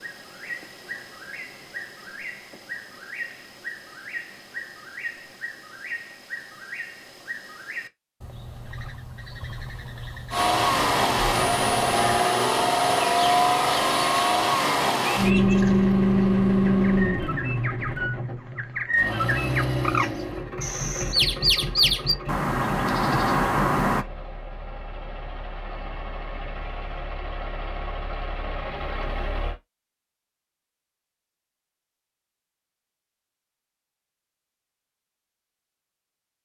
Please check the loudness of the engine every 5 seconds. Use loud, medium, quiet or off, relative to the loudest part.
off, off, loud, loud, quiet, quiet, off, off.